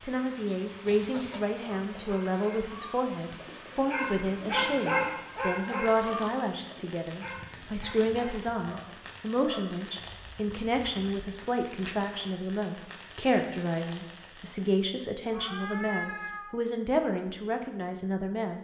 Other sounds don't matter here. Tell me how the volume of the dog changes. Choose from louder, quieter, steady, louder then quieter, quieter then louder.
louder then quieter.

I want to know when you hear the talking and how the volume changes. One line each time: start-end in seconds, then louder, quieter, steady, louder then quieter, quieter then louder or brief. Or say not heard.
0.0-18.5 steady.